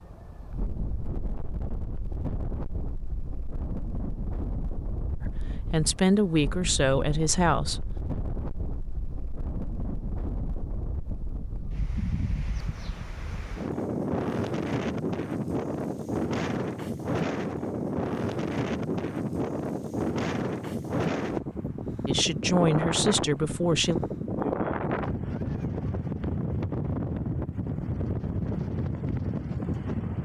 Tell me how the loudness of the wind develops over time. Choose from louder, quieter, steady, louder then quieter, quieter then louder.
louder.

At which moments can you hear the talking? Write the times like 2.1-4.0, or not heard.
5.2-7.8, 22.1-23.9.